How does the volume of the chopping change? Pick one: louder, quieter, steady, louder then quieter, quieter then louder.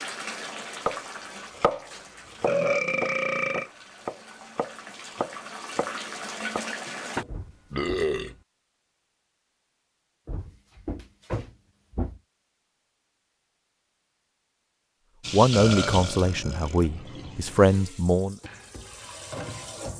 quieter.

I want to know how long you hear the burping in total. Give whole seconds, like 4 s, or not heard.
4 s.